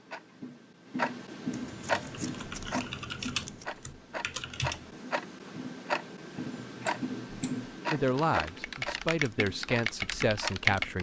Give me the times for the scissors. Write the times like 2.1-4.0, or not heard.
1.5-3.6, 6.7-7.8.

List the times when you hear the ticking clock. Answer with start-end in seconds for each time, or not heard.
0.0-10.9.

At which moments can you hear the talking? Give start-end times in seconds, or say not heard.
7.9-10.9.